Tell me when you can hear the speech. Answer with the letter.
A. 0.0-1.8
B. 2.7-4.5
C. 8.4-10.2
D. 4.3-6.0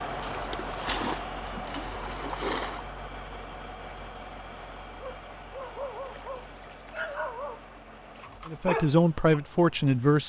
C.